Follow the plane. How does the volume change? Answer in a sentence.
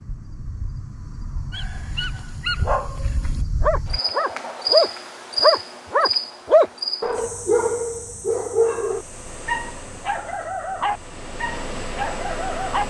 The loudness of the plane goes down, then up.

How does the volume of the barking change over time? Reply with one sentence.
The loudness of the barking goes up, then down.